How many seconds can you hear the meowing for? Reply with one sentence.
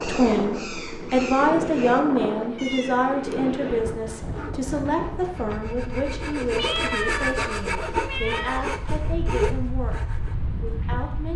You can hear the meowing for 3 seconds altogether.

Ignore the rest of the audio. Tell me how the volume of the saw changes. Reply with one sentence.
The loudness of the saw goes up.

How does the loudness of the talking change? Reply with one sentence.
The volume of the talking goes down.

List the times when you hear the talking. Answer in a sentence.
The talking can be heard from 0.0 to 11.3 s.